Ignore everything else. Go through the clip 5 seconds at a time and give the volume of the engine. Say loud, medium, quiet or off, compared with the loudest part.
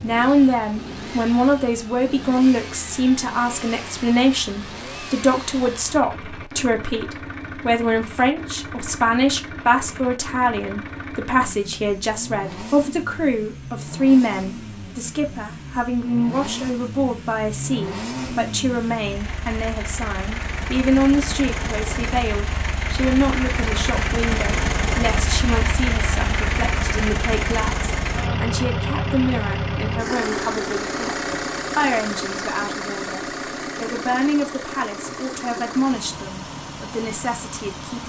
medium, medium, medium, medium, loud, loud, loud, medium.